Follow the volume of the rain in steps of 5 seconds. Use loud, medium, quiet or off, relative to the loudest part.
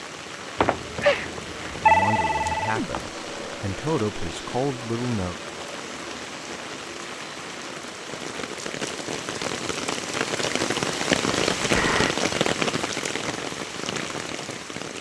medium, medium, loud.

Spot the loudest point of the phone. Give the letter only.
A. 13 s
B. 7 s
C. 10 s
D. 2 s
D.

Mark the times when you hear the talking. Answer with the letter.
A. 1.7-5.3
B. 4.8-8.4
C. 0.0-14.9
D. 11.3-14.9
A.